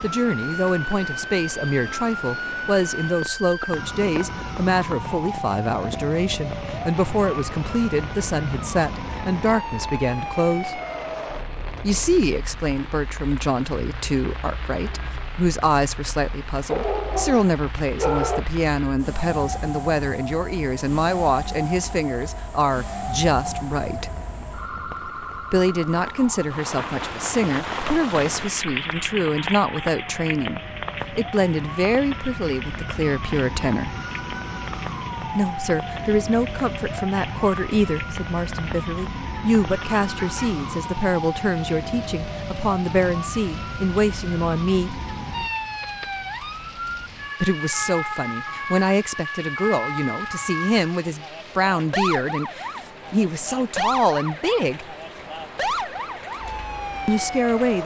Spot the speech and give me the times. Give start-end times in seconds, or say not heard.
0.0-10.8, 11.8-24.1, 25.5-34.0, 35.4-45.0, 47.4-54.9, 57.0-57.8.